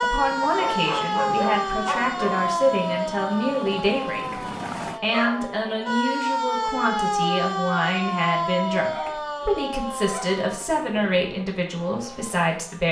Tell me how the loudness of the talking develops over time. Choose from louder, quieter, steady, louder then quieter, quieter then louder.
steady.